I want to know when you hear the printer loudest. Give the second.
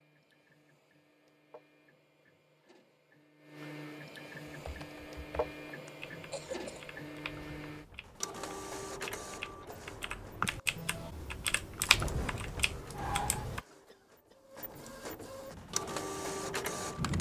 16 s.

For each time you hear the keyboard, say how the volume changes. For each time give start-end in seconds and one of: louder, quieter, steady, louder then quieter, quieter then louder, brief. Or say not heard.
4.5-13.6 louder
15.5-17.1 brief.